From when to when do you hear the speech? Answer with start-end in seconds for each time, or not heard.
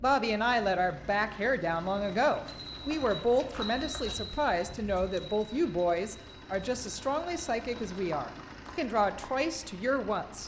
0.0-10.4.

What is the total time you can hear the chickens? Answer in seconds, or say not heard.
not heard.